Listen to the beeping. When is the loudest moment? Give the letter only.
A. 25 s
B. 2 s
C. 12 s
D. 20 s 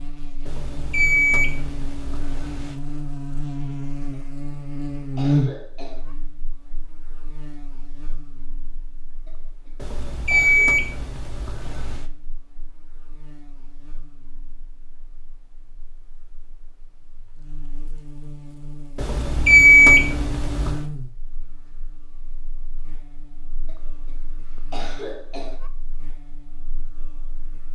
D.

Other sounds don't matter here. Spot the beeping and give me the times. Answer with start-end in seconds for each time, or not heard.
0.5-2.8, 9.8-12.1, 18.9-20.9.